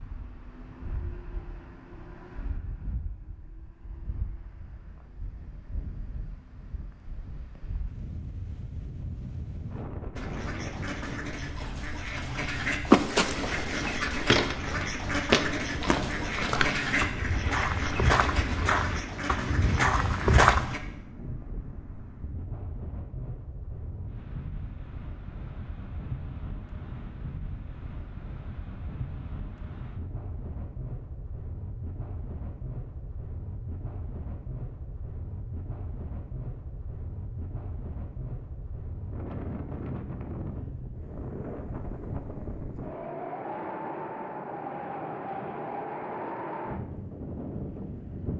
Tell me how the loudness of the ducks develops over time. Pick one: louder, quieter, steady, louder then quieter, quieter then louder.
louder then quieter.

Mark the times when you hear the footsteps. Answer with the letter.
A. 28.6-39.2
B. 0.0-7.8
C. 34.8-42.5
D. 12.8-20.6
D.